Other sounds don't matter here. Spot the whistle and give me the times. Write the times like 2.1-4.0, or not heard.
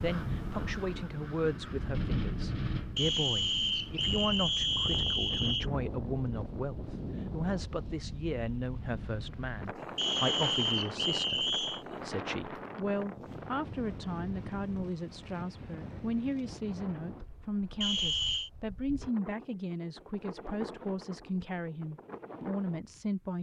3.0-5.7, 9.9-11.8, 17.8-18.5.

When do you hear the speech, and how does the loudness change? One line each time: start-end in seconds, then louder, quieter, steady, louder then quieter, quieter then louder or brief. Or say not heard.
0.0-23.3 steady.